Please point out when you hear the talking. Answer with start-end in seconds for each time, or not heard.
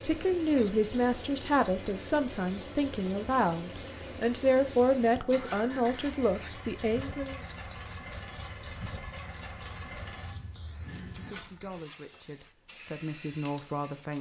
0.0-7.4, 11.2-14.1.